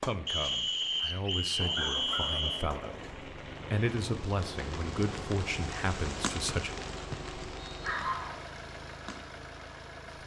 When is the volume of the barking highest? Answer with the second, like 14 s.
8 s.